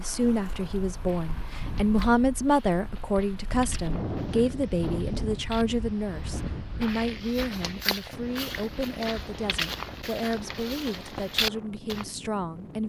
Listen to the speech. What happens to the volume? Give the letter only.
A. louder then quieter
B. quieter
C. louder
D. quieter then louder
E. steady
B.